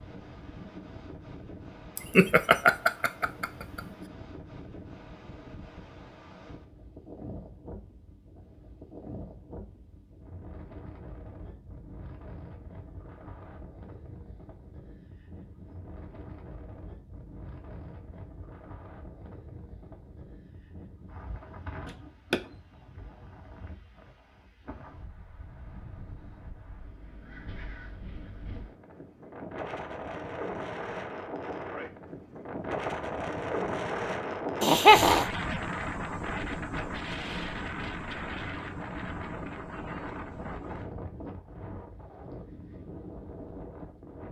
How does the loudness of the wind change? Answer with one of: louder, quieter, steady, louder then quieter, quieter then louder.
louder.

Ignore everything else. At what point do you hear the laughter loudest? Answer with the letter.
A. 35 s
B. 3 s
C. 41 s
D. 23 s
A.